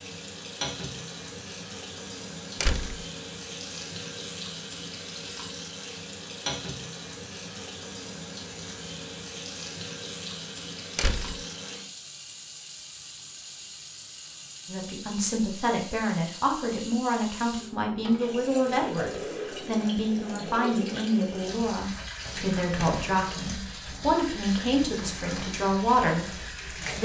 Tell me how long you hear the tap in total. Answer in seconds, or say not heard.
27 s.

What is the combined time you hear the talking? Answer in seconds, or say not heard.
12 s.